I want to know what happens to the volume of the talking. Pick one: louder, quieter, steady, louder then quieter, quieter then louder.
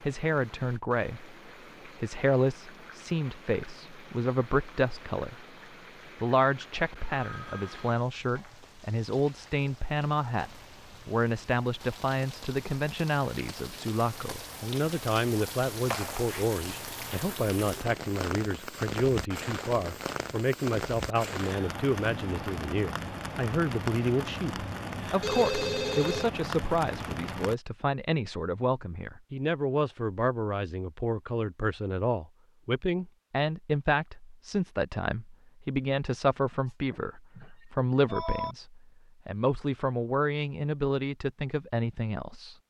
steady.